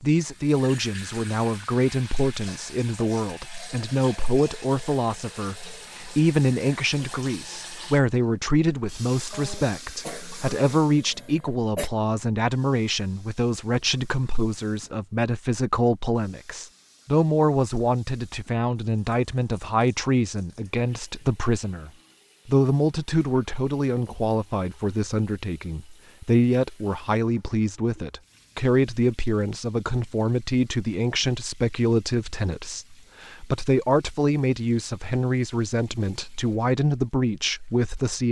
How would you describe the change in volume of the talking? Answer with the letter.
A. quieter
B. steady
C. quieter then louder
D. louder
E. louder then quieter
B.